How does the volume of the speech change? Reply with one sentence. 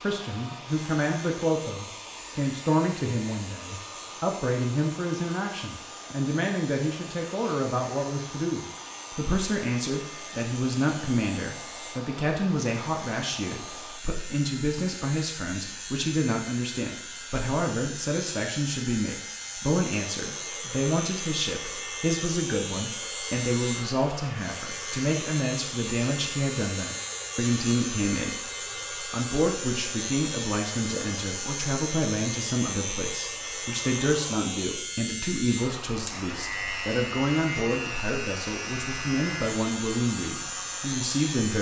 The loudness of the speech stays about the same.